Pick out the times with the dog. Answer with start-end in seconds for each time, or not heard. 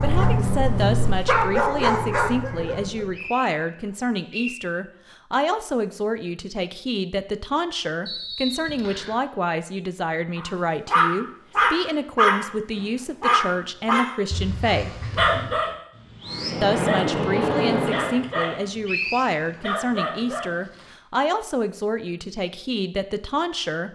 0.0-3.0, 10.3-20.9.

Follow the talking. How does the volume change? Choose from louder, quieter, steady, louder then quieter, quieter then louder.
steady.